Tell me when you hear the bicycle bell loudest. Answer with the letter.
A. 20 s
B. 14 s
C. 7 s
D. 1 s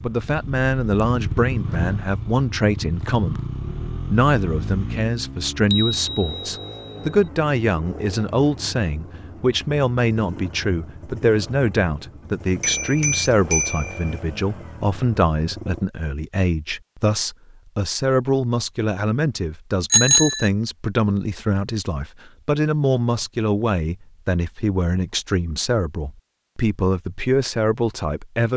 A.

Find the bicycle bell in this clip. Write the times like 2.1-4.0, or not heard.
5.7-7.0, 12.6-14.2, 19.9-20.5.